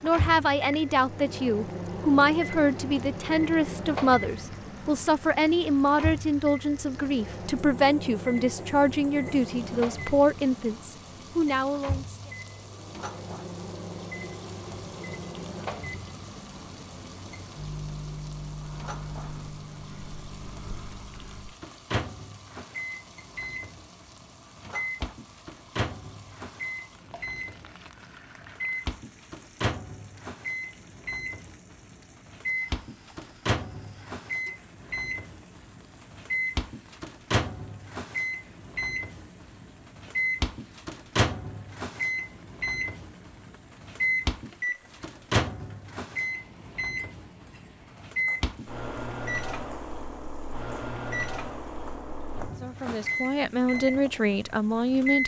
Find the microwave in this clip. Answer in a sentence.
You can hear the microwave from 0.0 to 55.2 s.